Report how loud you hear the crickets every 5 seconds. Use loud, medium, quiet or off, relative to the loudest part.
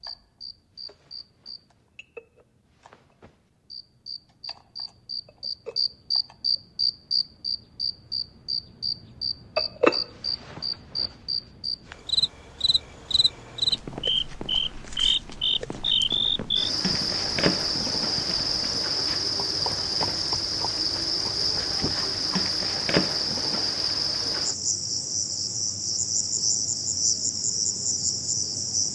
quiet, loud, loud, loud, loud, loud.